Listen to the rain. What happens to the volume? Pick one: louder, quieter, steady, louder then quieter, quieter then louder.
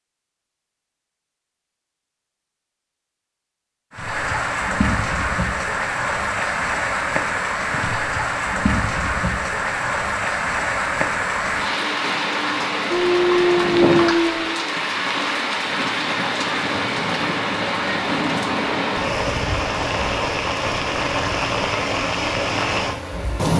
steady.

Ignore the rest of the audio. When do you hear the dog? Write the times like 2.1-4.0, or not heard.
12.9-14.5.